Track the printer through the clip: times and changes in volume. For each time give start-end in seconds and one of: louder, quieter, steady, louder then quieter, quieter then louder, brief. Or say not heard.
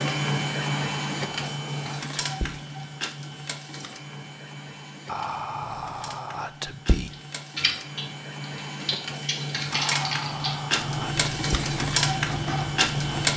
0.0-13.3 quieter then louder.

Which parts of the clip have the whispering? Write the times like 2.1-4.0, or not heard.
0.7-2.6, 5.0-7.1, 9.7-11.6.